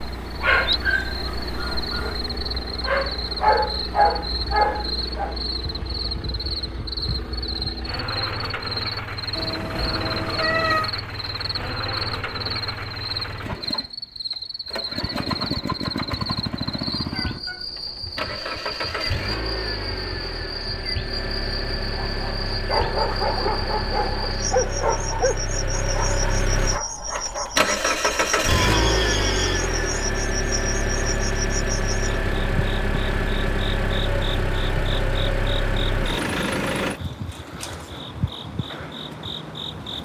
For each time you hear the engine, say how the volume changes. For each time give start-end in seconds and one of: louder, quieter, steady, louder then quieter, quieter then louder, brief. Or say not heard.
0.0-37.0 louder.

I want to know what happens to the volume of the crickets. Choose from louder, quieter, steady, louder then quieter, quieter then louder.
steady.